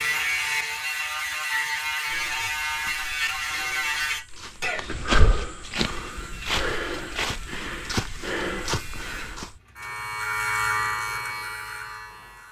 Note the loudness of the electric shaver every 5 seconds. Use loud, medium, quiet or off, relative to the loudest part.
loud, quiet, loud.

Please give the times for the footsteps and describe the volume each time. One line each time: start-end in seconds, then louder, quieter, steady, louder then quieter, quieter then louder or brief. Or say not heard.
2.0-9.6 louder.